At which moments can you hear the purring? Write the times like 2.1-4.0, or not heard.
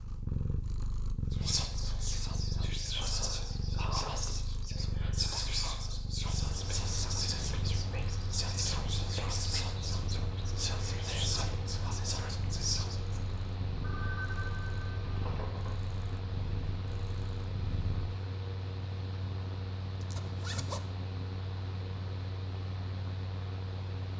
0.0-18.1.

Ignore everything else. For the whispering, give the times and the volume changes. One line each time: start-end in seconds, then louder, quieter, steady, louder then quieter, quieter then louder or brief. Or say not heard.
1.3-13.2 steady.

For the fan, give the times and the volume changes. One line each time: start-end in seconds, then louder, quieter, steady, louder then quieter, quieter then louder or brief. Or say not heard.
6.3-24.1 steady.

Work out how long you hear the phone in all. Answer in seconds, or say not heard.
2 s.